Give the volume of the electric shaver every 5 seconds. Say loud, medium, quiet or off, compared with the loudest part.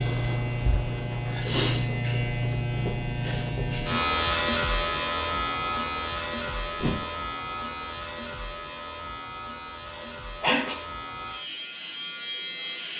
loud, medium, medium.